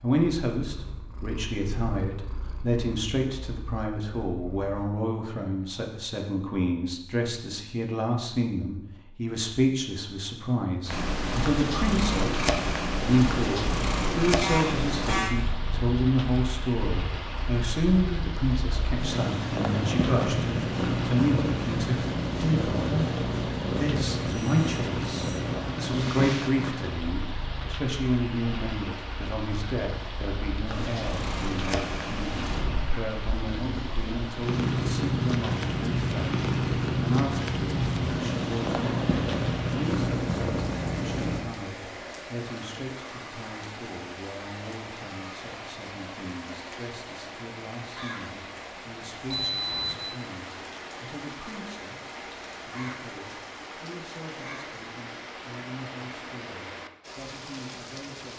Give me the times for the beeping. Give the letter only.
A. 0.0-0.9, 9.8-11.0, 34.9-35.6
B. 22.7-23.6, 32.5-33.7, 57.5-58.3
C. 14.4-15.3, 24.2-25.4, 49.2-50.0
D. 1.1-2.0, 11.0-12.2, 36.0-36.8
C.